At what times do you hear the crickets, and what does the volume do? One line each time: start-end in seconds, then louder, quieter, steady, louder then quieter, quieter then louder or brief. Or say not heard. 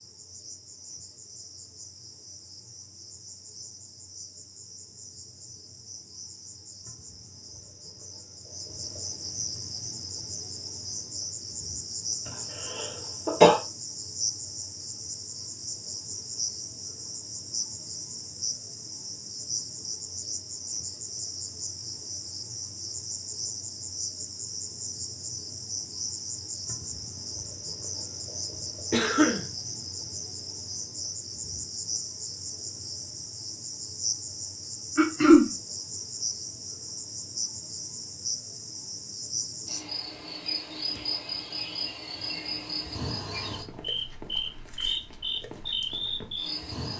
0.0-46.9 louder.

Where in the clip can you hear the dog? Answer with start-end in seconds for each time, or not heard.
not heard.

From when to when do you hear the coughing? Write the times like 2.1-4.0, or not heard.
12.8-13.6, 28.9-29.4, 35.0-35.5.